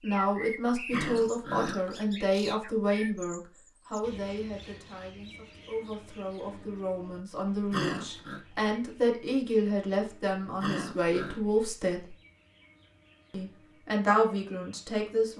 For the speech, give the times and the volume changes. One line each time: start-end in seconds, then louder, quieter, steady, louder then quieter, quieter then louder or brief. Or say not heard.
0.0-12.2 quieter then louder
13.3-15.3 brief.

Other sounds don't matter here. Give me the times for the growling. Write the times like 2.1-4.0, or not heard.
0.9-1.9, 7.7-8.4, 10.6-11.4.